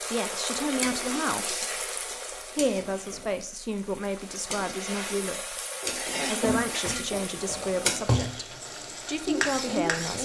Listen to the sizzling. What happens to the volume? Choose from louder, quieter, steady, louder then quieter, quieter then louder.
quieter then louder.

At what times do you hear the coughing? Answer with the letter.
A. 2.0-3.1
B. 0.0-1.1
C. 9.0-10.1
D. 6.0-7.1
D.